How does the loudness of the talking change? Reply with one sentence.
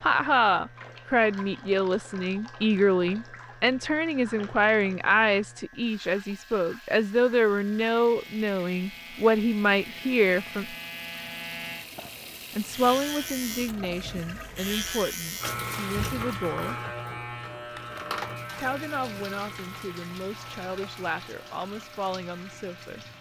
The loudness of the talking goes down.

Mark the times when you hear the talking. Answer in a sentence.
The talking can be heard from 0.0 to 10.8 s, from 12.6 to 16.8 s and from 18.6 to 23.1 s.